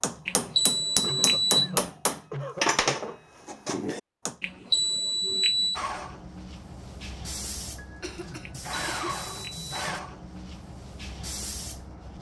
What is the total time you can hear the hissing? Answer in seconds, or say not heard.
6 s.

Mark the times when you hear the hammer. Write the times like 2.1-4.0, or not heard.
0.0-4.3.